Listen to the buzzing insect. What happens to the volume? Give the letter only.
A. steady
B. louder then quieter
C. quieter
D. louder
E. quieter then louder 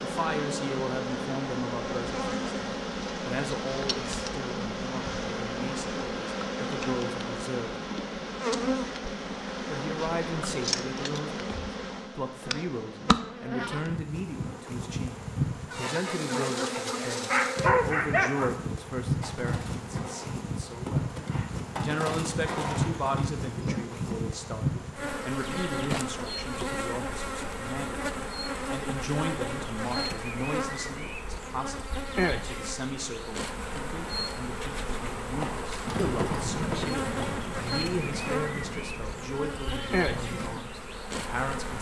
A.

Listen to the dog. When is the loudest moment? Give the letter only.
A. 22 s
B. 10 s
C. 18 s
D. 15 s
C.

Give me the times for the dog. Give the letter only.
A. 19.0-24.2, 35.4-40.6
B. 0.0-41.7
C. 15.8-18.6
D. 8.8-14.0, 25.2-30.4
C.